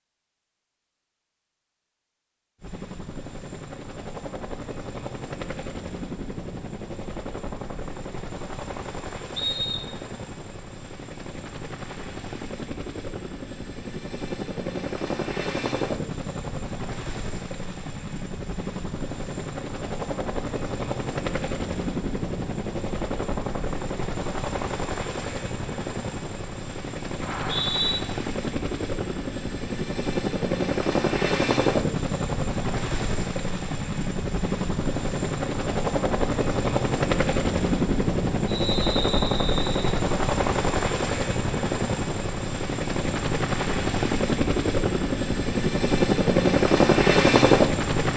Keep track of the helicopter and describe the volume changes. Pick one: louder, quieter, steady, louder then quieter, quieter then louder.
louder.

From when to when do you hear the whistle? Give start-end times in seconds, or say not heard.
9.3-10.1, 27.2-27.9, 38.5-40.0.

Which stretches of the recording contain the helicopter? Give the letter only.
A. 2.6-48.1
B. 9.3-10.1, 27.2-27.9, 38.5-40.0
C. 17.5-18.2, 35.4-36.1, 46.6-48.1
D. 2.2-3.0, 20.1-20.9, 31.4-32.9
A.